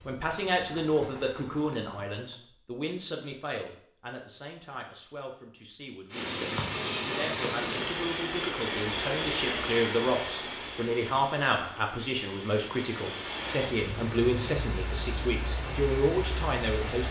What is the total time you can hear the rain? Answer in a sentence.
The rain can be heard for 11 seconds in total.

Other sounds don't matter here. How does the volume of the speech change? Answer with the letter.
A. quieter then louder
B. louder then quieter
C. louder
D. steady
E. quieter
A.